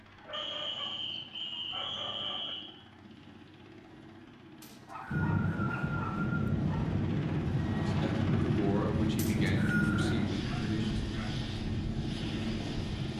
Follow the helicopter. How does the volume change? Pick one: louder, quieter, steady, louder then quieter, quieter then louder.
louder.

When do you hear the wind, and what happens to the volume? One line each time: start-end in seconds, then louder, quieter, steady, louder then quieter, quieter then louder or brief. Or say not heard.
5.1-13.1 quieter.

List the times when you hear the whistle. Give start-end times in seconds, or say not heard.
0.3-2.7, 4.6-6.5, 9.2-10.0.